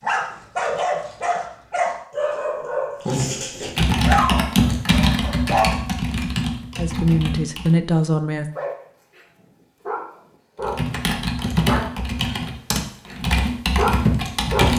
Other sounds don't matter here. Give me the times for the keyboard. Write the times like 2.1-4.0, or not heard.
3.8-7.7, 10.6-14.7.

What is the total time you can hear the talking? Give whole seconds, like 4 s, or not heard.
2 s.